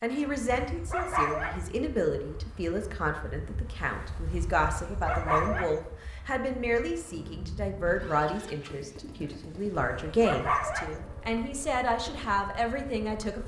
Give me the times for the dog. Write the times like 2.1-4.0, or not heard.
0.5-1.6, 4.8-5.8, 9.8-10.9.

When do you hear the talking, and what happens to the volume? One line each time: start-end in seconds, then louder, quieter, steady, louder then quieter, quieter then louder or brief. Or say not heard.
0.0-13.4 steady.